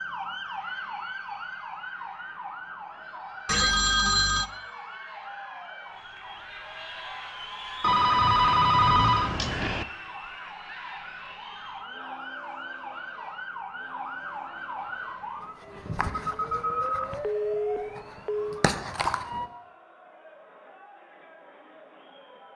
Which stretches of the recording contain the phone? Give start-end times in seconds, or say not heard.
3.5-4.5, 7.8-9.8, 16.1-18.6.